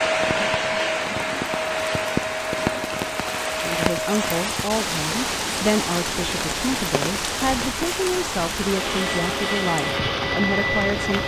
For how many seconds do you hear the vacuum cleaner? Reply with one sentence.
The vacuum cleaner can be heard for 7 seconds in total.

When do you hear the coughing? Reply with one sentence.
You can't hear the coughing here.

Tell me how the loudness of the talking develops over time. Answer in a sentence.
The volume of the talking stays about the same.